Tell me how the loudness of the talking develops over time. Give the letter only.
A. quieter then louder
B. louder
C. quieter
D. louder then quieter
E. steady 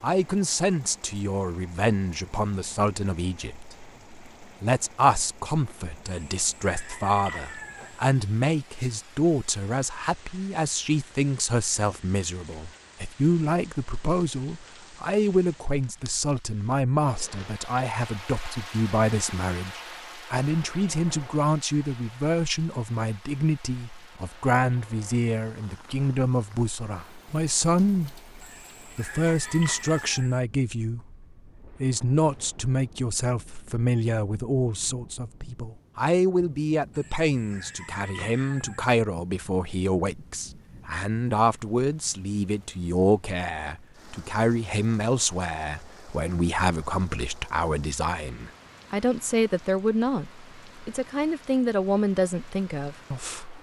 E.